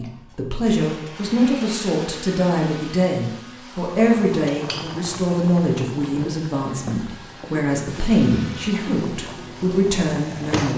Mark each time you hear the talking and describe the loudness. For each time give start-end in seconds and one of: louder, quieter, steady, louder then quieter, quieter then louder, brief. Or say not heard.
0.0-10.7 steady.